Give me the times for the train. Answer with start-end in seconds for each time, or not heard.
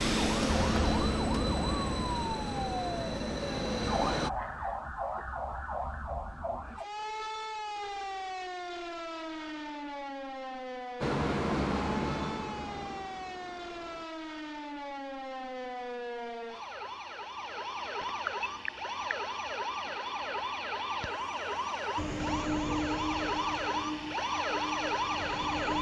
0.0-4.3, 11.0-14.1, 21.9-25.7.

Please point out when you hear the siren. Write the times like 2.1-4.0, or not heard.
0.1-25.7.